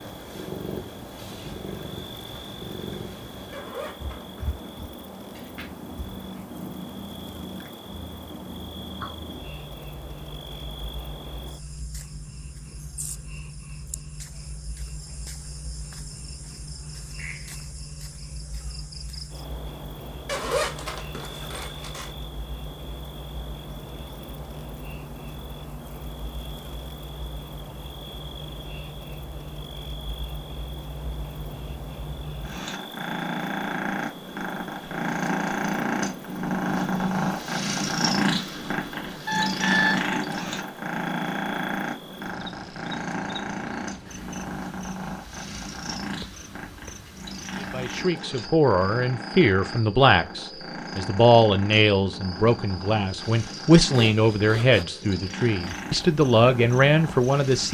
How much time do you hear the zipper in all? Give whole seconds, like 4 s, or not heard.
4 s.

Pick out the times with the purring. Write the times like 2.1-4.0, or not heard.
0.0-57.6.